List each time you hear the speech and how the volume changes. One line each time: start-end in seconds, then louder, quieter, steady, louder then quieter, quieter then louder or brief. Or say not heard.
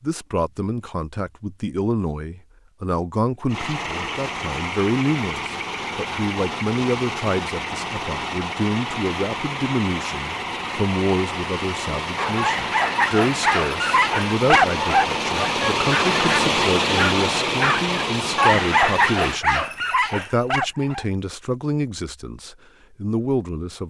0.0-23.8 steady.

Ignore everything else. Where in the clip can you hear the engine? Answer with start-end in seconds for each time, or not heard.
3.5-19.4.